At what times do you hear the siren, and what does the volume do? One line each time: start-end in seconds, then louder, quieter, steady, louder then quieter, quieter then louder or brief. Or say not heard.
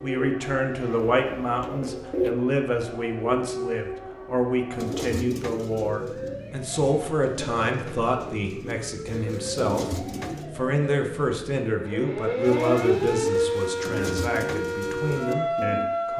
0.0-16.1 louder.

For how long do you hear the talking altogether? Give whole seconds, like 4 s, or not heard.
16 s.